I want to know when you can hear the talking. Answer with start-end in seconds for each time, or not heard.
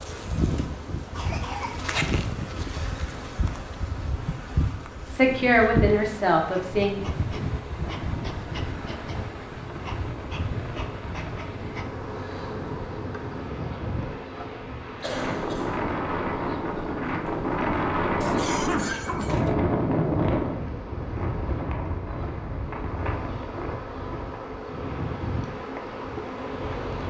5.1-7.0.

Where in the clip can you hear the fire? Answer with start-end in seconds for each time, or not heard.
not heard.